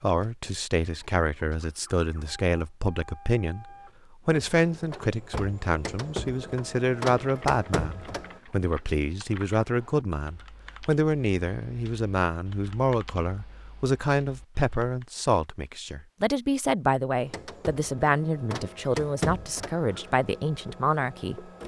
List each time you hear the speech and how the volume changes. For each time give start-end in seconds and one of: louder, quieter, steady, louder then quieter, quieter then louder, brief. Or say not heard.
0.0-21.5 steady.